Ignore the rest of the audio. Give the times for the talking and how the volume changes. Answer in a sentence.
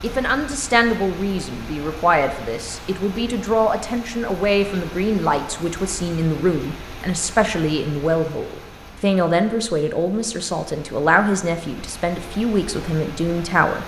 You can hear the talking from 0.0 to 13.8 s, at a steady volume.